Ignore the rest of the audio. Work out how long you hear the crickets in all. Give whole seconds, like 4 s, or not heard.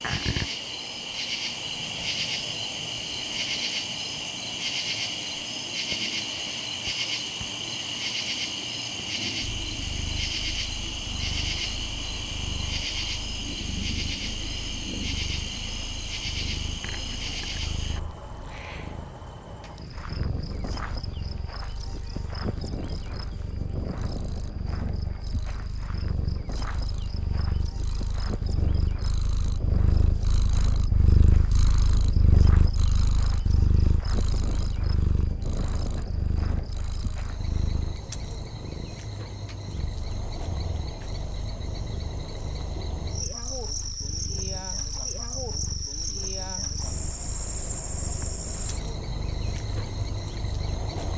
51 s.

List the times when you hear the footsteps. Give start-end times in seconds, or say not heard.
not heard.